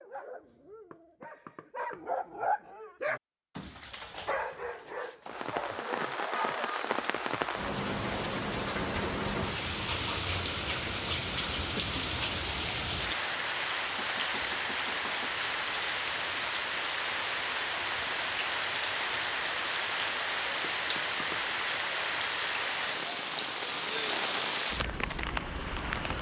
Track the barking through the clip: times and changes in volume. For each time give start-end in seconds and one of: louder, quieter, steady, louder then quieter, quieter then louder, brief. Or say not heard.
0.0-7.1 louder then quieter.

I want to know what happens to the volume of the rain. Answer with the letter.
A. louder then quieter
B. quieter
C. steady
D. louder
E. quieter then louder
C.